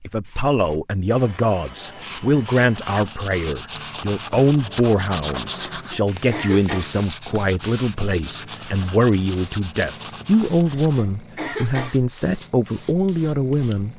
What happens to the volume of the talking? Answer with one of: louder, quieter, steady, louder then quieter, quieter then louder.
steady.